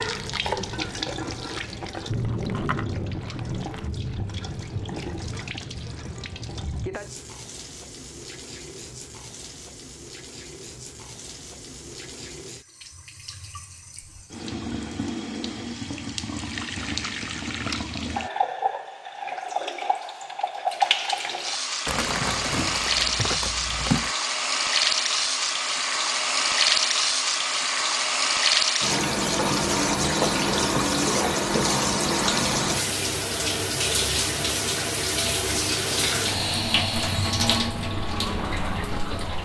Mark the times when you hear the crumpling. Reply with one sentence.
You can hear the crumpling from 2.1 to 3.9 s and from 21.9 to 24.1 s.